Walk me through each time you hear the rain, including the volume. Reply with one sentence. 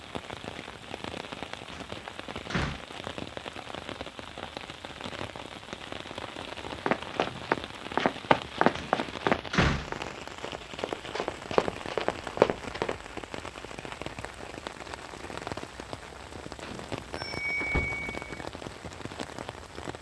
You can hear the rain from 0.0 to 19.9 s, at a steady volume.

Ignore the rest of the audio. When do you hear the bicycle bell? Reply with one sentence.
The bicycle bell can be heard from 16.6 to 18.4 s.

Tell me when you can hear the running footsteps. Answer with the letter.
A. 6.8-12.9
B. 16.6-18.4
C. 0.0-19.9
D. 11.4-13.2
A.